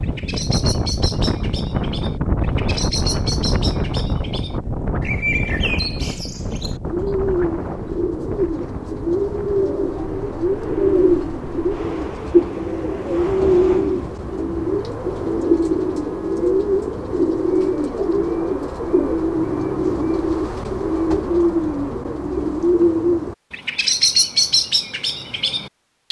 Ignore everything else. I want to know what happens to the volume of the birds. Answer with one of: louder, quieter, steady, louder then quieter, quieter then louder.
louder.